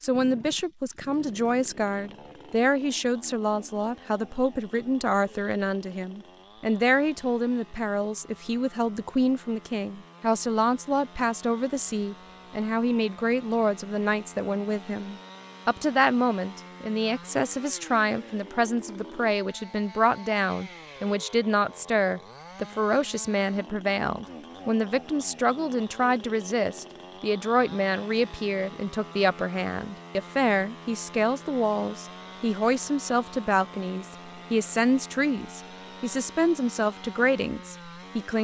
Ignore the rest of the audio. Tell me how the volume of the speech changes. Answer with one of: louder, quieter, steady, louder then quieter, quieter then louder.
steady.